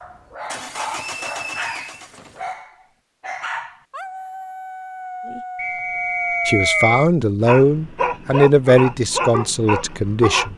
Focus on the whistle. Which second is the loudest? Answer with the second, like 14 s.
7 s.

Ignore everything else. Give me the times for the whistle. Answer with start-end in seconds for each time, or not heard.
1.0-2.0, 5.5-7.1.